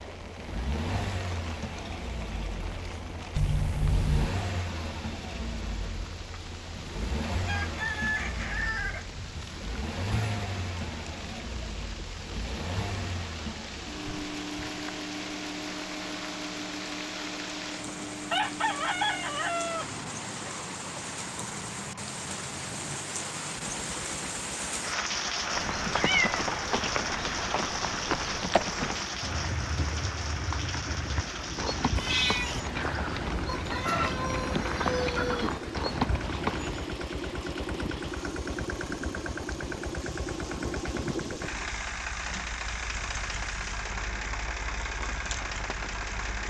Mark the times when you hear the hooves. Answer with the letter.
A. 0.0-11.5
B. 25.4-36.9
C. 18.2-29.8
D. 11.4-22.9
B.